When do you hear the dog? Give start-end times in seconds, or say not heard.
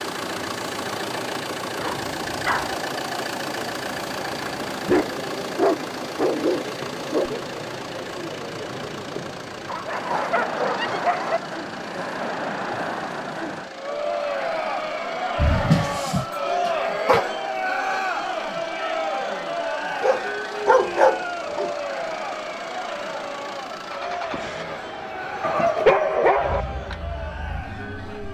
1.8-2.8, 4.8-7.3, 9.7-11.4, 15.3-17.2, 20.0-21.7, 25.4-26.6.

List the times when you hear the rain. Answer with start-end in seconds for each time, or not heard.
not heard.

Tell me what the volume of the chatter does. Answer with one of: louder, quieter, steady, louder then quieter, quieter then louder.
louder then quieter.